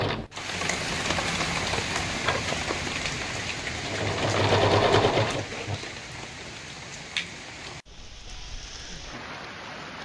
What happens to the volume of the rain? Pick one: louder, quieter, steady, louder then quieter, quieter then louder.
quieter.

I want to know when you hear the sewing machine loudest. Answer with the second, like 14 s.
5 s.